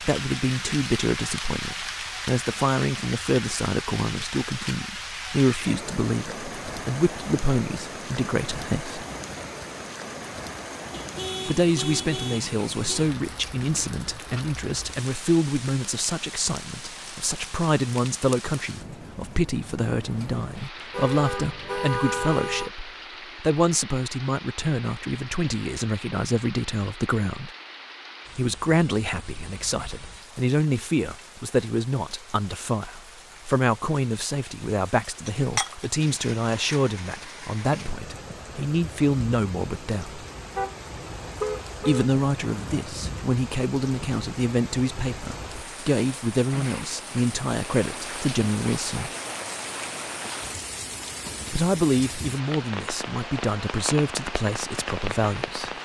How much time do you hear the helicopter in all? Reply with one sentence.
The helicopter can't be heard in this clip.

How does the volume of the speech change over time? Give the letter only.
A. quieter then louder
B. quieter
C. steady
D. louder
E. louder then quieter
C.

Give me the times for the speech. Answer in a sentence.
You can hear the speech from 0.0 to 9.1 s, from 11.4 to 27.5 s, from 28.4 to 40.2 s, from 41.8 to 49.1 s and from 51.5 to 55.8 s.